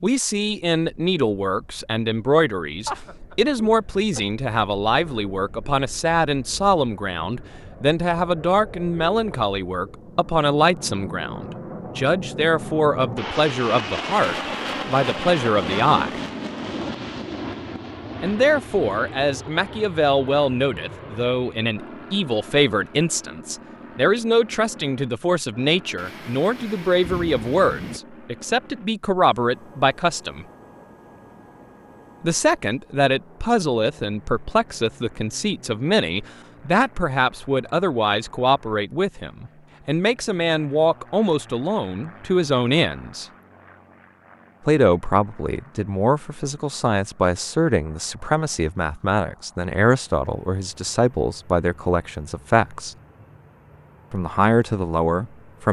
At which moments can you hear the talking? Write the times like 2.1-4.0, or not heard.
0.0-16.2, 18.2-30.4, 32.2-43.2, 44.6-53.0, 54.1-55.6.